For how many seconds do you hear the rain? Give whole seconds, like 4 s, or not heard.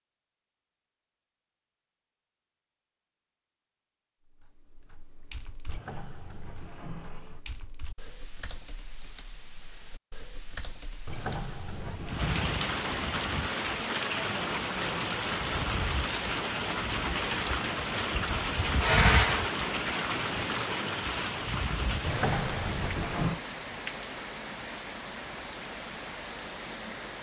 15 s.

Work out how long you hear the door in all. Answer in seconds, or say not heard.
5 s.